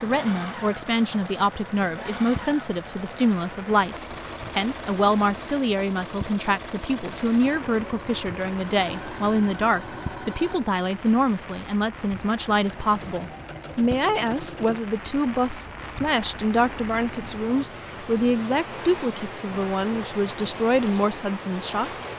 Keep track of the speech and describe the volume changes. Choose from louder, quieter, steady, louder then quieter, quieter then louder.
steady.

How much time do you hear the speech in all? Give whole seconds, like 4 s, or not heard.
22 s.